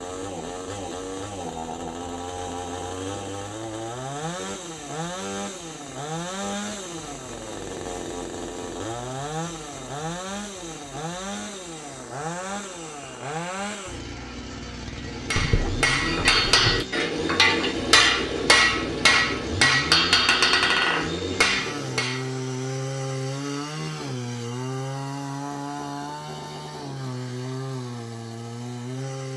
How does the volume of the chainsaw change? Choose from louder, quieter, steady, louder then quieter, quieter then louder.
steady.